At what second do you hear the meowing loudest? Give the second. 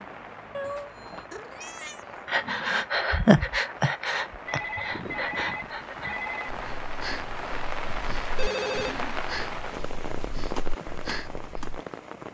1 s.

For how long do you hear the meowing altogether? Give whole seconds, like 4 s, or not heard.
2 s.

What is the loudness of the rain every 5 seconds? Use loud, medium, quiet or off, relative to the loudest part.
medium, loud, loud.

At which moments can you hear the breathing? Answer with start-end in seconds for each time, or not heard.
2.2-11.8.